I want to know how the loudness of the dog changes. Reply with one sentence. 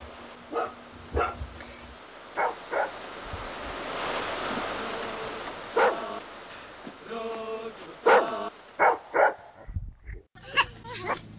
The volume of the dog goes up, then down.